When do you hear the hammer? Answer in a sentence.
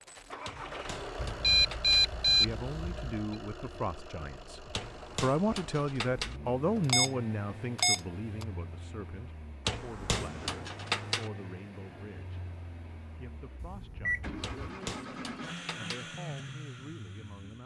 You can hear the hammer from 0.5 to 1.9 s, from 4.7 to 6.4 s, from 9.7 to 11.3 s and from 14.4 to 16.1 s.